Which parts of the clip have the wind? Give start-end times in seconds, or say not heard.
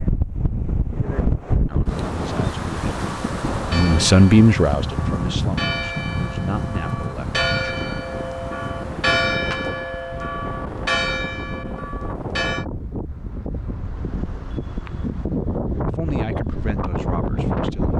0.0-17.9.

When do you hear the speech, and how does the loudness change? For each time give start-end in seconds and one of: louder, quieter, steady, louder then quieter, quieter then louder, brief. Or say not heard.
1.6-7.9 louder then quieter
15.7-17.9 brief.